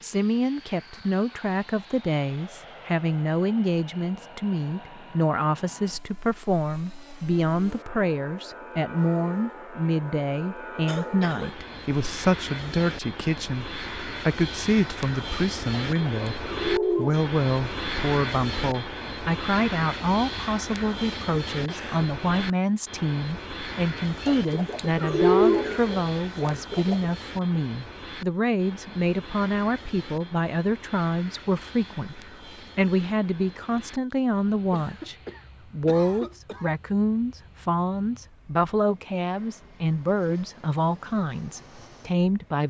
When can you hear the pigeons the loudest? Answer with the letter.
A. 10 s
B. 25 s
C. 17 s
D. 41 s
B.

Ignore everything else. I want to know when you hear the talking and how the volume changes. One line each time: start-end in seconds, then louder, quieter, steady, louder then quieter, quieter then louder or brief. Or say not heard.
0.0-42.6 steady.